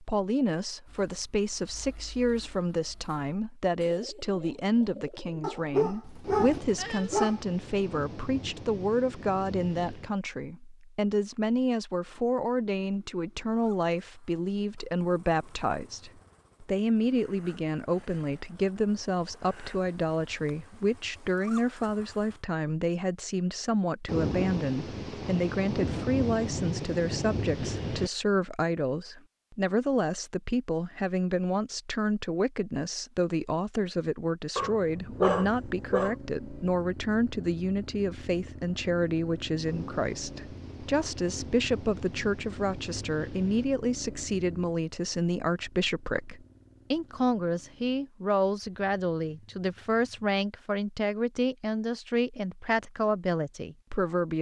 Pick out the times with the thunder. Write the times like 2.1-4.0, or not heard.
6.2-10.2, 24.1-28.1, 39.6-43.6.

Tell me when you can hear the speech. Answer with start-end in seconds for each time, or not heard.
0.0-54.3.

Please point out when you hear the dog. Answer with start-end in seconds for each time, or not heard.
5.4-7.4, 34.5-36.1.